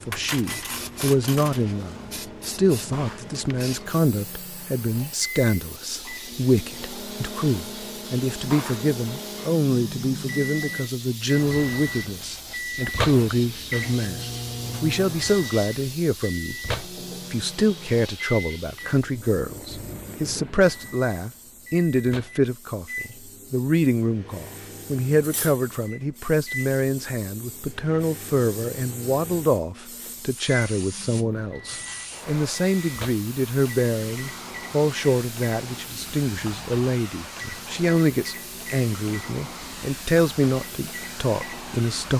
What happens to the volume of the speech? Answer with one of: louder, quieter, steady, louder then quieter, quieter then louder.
steady.